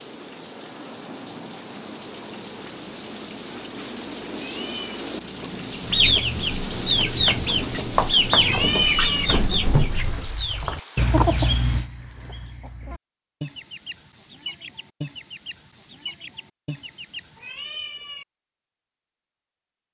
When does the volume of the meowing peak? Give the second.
9 s.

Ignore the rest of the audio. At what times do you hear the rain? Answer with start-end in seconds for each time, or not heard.
0.0-11.8.